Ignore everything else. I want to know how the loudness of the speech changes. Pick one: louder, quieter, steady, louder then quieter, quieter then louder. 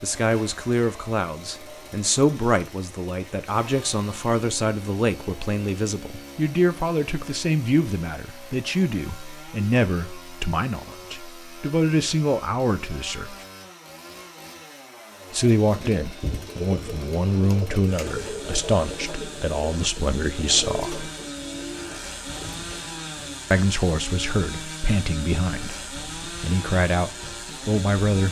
steady.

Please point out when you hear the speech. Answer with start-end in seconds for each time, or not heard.
0.0-13.3, 15.3-21.1, 23.5-28.2.